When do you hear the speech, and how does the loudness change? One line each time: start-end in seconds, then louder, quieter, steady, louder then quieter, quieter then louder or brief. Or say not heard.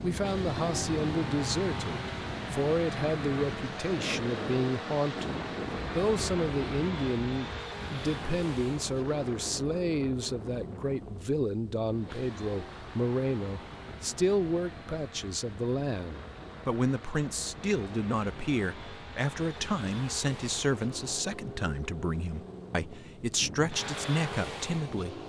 0.0-25.2 steady.